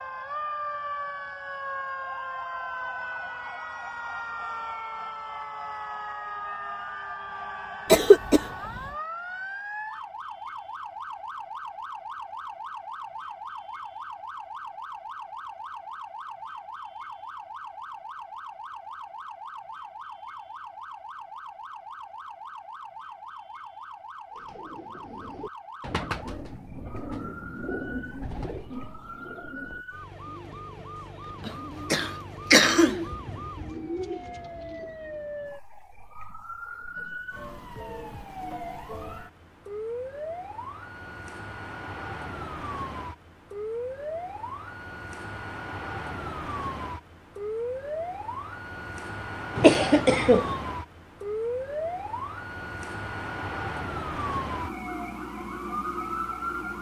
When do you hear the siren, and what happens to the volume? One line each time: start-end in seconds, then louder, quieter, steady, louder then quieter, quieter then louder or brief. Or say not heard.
0.0-56.7 quieter then louder.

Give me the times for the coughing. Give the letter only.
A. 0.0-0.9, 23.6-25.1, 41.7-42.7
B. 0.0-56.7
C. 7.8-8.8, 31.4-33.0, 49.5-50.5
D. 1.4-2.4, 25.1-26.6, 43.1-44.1
C.